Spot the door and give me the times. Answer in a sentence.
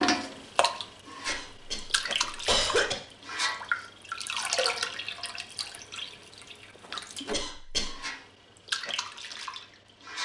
The door can't be heard in this clip.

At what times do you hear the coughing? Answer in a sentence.
You can hear the coughing from 1.2 to 3.0 s and from 7.3 to 8.0 s.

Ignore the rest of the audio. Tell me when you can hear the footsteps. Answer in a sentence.
You can't hear the footsteps here.